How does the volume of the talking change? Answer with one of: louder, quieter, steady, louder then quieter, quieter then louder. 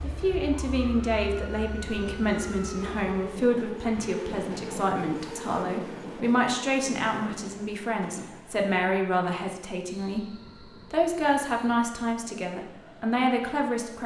steady.